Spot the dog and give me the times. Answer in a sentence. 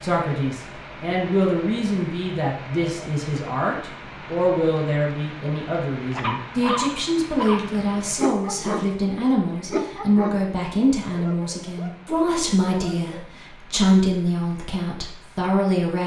You can hear the dog from 6.1 to 13.3 s.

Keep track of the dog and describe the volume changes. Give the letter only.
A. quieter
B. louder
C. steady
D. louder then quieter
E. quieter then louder
A.